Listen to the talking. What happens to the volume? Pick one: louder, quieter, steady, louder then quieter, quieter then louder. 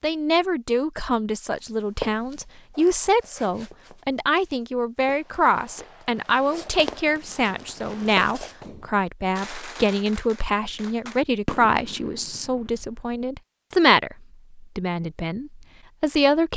steady.